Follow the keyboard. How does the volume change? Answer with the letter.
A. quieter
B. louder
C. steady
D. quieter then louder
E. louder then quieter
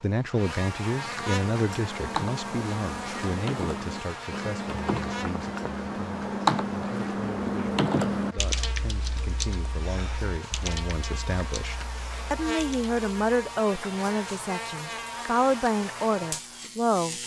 E.